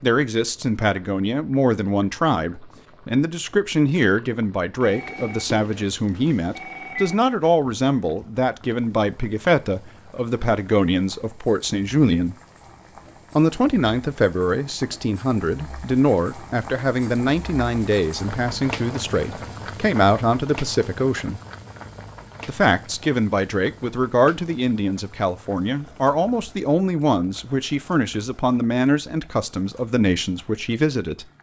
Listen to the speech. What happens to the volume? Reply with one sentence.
The volume of the speech stays about the same.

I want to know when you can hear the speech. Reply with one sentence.
The speech can be heard from 0.0 to 12.3 s, from 13.3 to 21.4 s and from 22.4 to 31.2 s.